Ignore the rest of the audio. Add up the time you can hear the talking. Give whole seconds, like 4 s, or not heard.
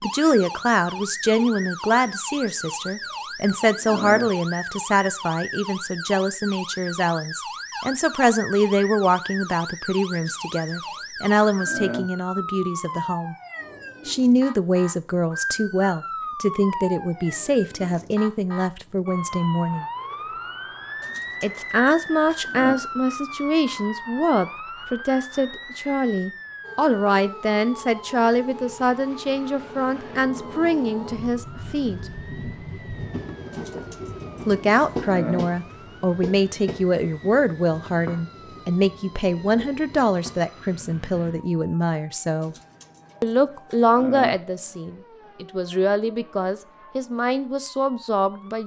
43 s.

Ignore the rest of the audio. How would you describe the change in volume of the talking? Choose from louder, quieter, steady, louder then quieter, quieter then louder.
steady.